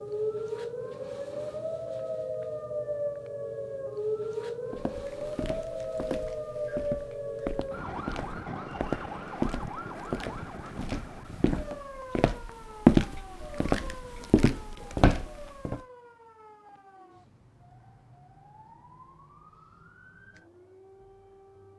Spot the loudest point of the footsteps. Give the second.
13 s.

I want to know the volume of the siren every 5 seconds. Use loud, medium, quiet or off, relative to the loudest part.
loud, loud, medium, quiet, quiet.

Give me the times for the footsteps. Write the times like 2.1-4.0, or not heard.
4.7-15.8.